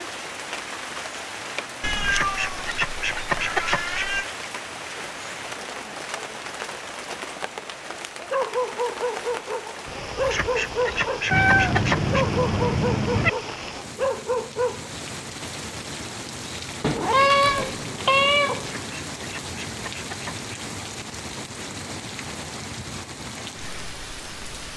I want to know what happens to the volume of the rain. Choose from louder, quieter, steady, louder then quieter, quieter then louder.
steady.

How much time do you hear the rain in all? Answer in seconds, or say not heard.
25 s.